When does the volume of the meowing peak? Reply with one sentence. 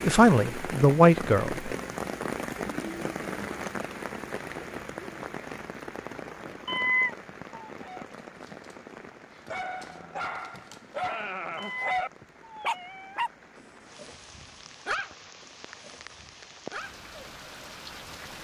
The volume of the meowing peaks at 7 seconds.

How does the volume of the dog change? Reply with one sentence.
The loudness of the dog goes up, then down.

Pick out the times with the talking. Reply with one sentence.
You can hear the talking from 0.0 to 1.7 s.